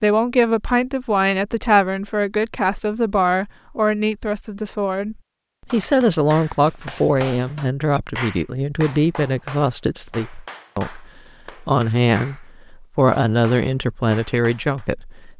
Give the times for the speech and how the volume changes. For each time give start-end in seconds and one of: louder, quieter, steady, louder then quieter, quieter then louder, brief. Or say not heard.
0.0-15.3 steady.